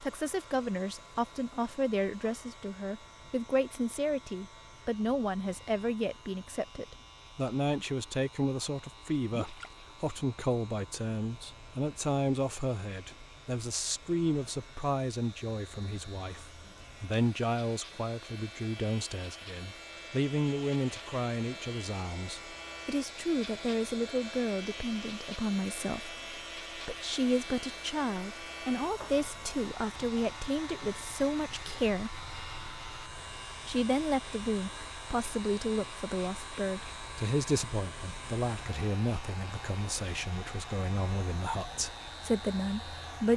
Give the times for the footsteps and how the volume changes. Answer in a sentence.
You can't hear the footsteps here.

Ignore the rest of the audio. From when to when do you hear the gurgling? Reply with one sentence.
The gurgling can be heard from 9.3 to 9.8 s.